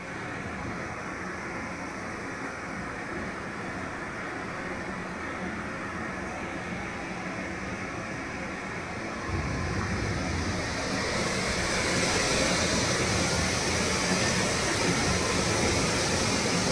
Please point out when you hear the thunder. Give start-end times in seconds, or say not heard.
9.2-10.7.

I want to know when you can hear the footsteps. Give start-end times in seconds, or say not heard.
not heard.